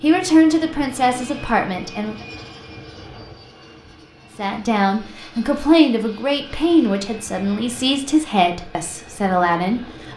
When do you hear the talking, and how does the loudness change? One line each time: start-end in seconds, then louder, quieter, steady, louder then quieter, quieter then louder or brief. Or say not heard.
0.0-2.1 brief
4.3-10.1 steady.